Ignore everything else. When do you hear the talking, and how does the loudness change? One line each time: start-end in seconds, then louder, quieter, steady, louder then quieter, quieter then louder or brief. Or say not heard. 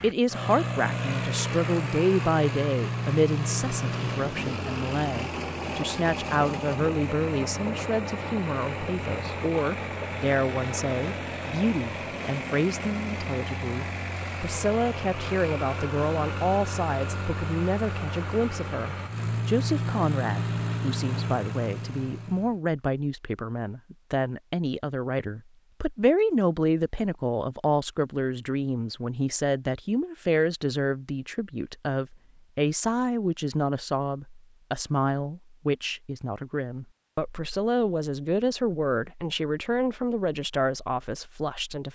0.0-41.9 steady.